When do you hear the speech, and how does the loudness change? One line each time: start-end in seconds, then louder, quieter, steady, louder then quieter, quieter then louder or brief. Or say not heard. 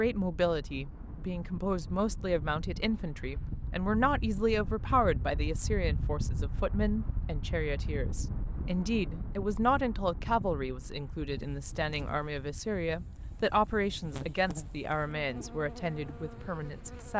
0.0-17.1 steady.